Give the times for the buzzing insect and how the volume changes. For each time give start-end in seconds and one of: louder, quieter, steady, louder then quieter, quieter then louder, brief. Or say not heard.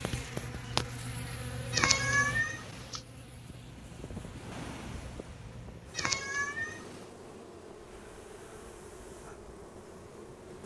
0.0-10.6 quieter.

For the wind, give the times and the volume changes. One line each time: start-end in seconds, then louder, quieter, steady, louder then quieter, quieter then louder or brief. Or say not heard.
2.9-10.6 quieter.